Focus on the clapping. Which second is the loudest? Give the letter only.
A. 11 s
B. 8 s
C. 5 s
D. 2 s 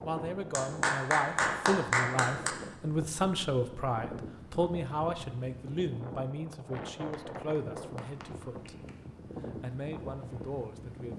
D.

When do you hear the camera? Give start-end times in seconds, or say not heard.
not heard.